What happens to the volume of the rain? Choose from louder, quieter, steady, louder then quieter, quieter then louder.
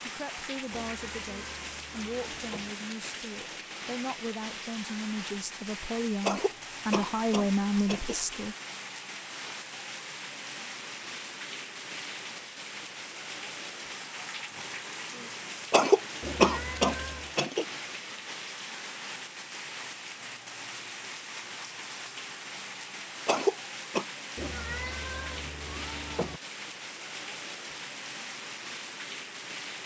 steady.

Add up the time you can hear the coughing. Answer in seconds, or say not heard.
5 s.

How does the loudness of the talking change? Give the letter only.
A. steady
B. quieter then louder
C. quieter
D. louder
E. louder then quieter
D.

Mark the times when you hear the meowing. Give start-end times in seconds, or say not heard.
0.7-2.8, 16.2-17.4, 24.4-26.4.